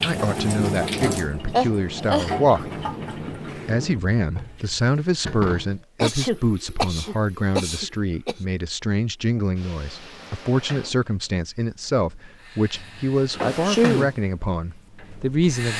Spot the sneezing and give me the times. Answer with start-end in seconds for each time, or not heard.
1.5-2.3, 6.0-8.3, 13.4-14.1.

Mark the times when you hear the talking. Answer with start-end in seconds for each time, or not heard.
0.0-2.7, 3.6-15.7.